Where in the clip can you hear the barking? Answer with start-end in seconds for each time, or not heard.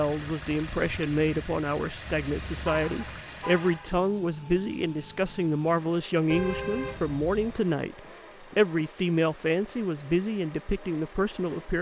not heard.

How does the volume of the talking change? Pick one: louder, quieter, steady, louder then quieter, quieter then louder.
steady.